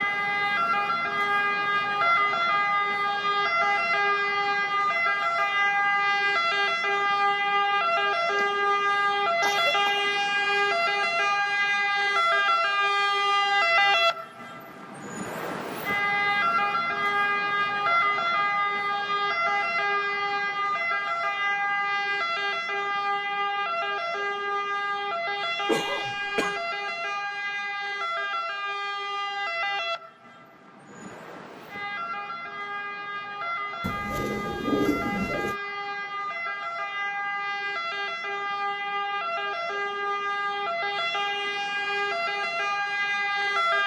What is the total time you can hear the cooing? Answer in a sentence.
You can hear the cooing for 2 seconds altogether.